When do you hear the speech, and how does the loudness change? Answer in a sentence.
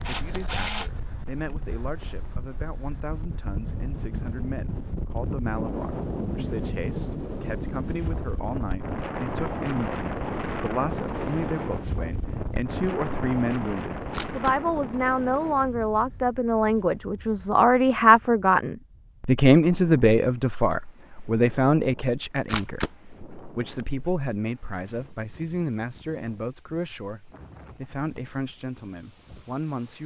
The speech can be heard from 0.0 to 30.0 s, getting louder then quieter.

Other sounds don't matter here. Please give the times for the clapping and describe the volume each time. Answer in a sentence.
The clapping can't be heard in this clip.